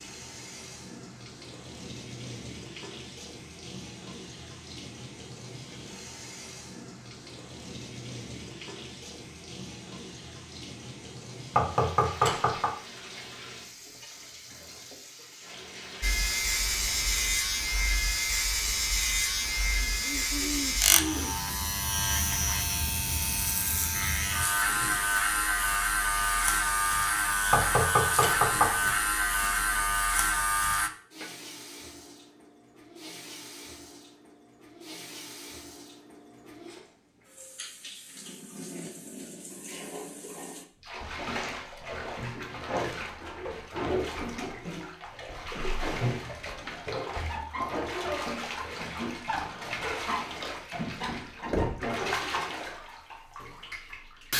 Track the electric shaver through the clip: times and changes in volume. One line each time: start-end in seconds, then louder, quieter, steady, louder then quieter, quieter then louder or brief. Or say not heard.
16.0-30.9 steady.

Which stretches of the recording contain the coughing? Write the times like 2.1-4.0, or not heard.
19.8-21.4.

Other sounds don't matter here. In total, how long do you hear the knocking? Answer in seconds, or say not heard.
3 s.